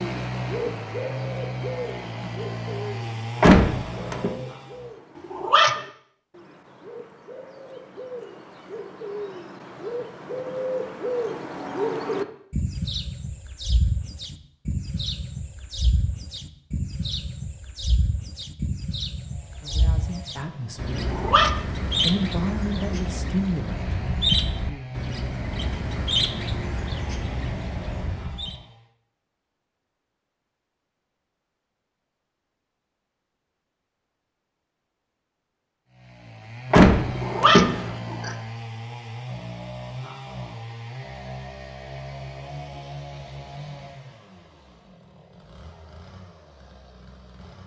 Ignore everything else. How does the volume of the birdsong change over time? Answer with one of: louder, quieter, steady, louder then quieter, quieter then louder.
louder.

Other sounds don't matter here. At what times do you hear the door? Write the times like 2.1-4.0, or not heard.
3.4-4.3, 36.7-37.9.